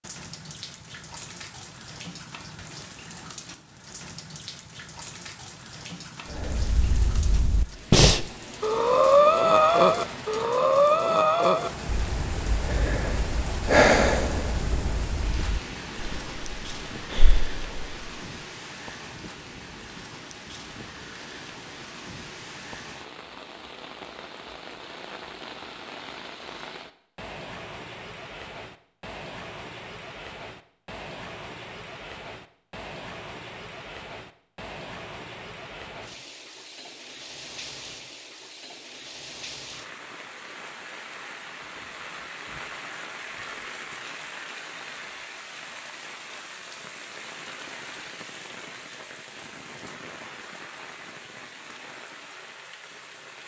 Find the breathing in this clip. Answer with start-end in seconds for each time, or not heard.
6.3-18.1.